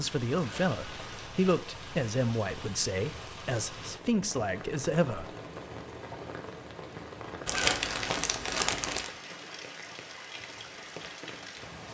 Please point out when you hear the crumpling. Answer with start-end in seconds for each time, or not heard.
0.3-1.4, 7.5-9.1.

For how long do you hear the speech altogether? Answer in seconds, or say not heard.
5 s.